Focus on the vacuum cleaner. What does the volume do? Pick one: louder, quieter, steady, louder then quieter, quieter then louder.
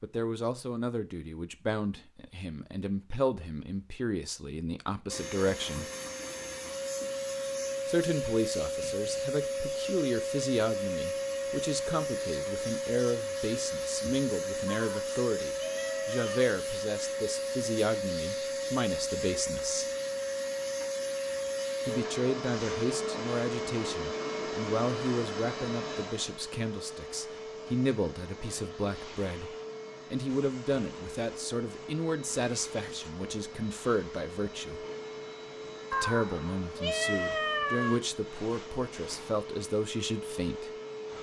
quieter.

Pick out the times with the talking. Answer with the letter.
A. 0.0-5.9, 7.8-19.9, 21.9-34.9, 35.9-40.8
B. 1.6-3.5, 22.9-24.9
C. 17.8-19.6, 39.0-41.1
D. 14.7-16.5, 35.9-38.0
A.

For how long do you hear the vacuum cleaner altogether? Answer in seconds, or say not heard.
36 s.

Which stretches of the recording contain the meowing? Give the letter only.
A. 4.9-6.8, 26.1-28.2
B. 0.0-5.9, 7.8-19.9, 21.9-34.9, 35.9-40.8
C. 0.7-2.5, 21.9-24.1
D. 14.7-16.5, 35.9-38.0
D.